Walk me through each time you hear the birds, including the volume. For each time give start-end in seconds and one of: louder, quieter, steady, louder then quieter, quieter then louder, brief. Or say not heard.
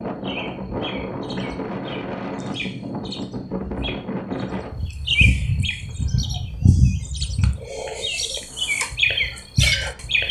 0.0-10.2 louder.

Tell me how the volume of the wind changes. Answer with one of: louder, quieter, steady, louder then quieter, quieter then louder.
quieter.